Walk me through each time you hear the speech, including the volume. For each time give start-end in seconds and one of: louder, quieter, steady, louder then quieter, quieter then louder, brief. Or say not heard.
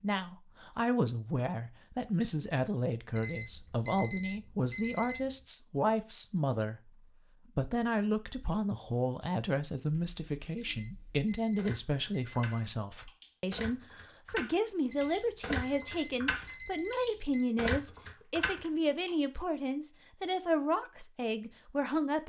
0.0-6.9 steady
7.5-22.2 steady.